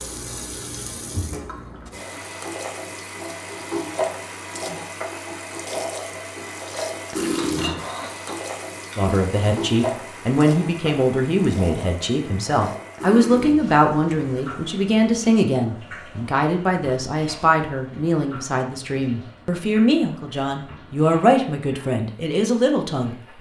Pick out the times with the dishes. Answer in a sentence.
The dishes can be heard from 7.3 to 9.2 s.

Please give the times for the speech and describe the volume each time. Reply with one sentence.
The speech can be heard from 8.9 to 23.3 s, at a steady volume.